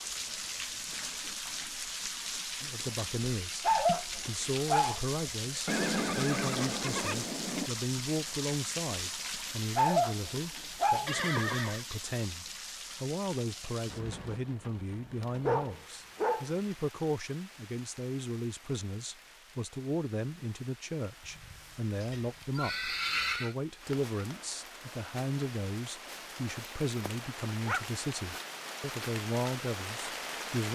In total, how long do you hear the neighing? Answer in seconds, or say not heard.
5 s.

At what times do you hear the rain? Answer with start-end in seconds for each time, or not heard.
0.0-30.6.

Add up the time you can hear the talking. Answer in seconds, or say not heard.
28 s.